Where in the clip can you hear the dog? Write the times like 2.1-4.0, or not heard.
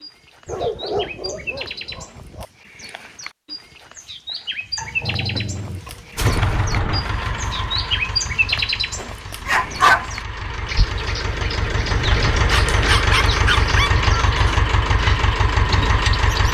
0.5-2.5, 4.8-6.5, 8.9-10.2, 12.5-13.9.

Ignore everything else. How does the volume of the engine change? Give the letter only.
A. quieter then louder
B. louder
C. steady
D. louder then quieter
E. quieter
A.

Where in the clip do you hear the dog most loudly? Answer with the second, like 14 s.
10 s.